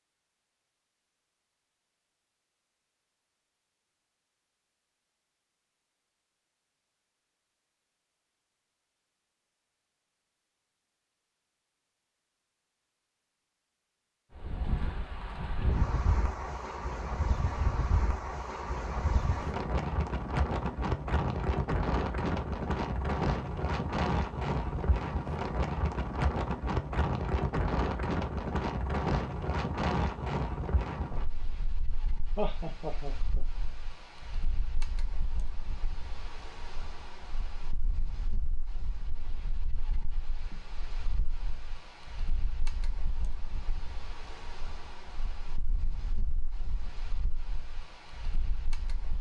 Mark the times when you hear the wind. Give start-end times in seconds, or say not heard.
14.3-49.1.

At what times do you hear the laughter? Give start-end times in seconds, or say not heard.
32.4-33.5.